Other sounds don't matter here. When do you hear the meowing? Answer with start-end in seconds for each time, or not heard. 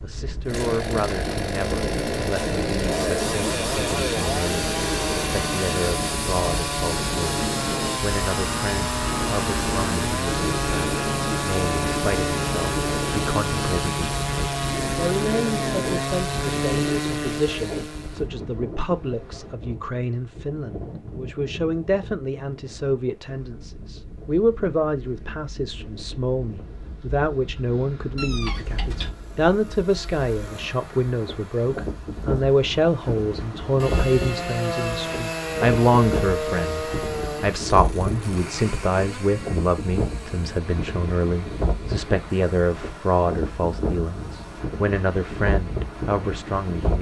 28.1-29.1.